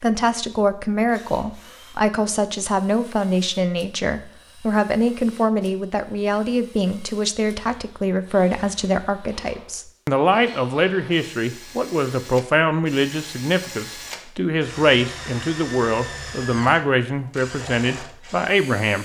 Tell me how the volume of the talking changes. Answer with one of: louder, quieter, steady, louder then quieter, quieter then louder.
steady.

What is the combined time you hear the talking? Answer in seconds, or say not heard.
19 s.